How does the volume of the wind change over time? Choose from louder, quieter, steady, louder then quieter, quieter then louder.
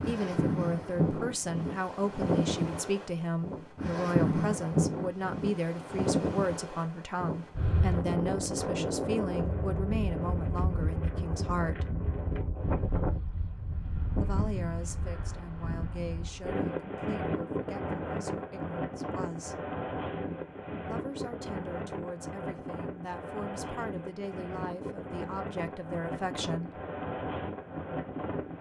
quieter.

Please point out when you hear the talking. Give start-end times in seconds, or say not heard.
0.0-11.9, 14.2-19.6, 20.9-26.9.